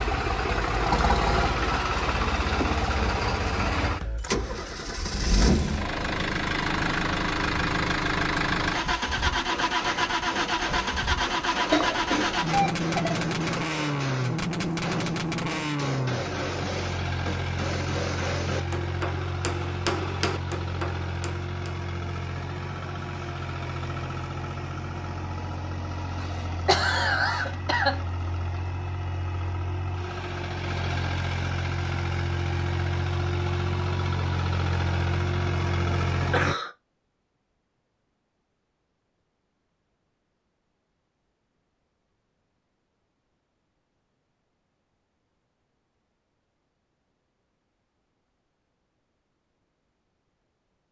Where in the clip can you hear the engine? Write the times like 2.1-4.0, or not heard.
0.0-36.5.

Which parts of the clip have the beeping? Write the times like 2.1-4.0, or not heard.
12.4-13.2.